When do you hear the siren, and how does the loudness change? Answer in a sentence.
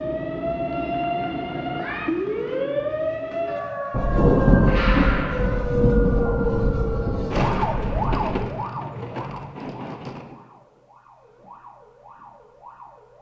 The siren can be heard from 0.0 to 13.1 s, getting quieter.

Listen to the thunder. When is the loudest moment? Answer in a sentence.
The loudest moment of the thunder is at 4 seconds.